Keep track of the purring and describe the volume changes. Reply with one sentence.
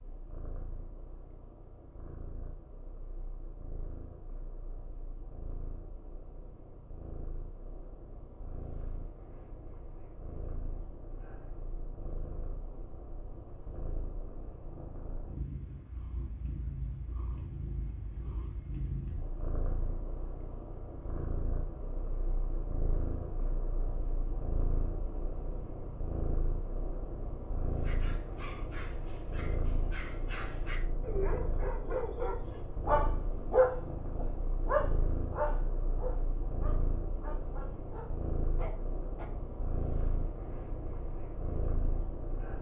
The volume of the purring goes up.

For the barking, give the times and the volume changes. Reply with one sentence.
The barking can be heard from 27.8 to 39.3 s, getting louder then quieter.